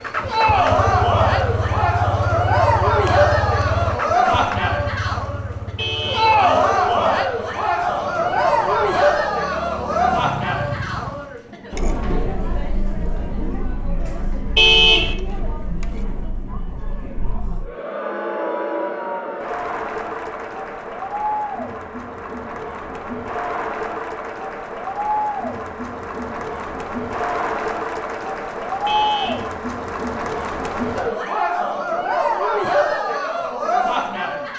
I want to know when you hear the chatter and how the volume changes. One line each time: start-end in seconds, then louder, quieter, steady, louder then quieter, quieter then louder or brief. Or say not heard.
0.1-34.5 quieter then louder.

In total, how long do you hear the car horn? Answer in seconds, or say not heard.
2 s.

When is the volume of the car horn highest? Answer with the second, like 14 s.
15 s.